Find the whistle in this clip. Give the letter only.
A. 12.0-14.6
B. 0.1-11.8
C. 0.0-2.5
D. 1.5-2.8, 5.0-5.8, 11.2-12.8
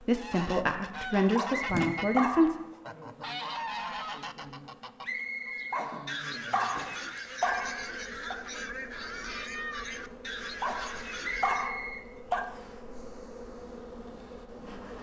D.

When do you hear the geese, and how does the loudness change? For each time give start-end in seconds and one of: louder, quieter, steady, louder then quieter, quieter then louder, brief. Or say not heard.
0.1-11.8 steady.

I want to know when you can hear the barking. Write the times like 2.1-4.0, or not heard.
1.4-2.6, 5.7-8.3, 10.6-12.5.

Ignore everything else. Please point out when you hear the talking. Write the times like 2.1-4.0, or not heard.
0.0-2.5.